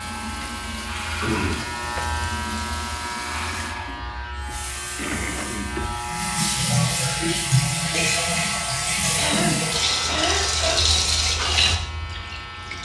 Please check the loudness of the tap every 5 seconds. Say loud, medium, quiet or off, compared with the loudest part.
quiet, loud, loud.